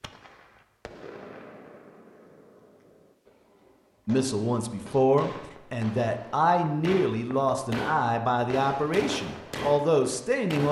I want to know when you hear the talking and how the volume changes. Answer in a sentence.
You can hear the talking from 4.0 to 10.6 s, at a steady volume.